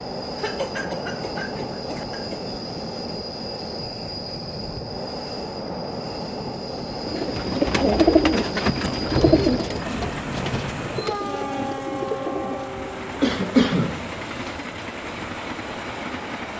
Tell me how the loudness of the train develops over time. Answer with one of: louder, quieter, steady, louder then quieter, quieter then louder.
steady.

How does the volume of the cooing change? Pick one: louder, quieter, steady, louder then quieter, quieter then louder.
quieter.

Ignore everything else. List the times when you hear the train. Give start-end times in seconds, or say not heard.
0.0-16.5.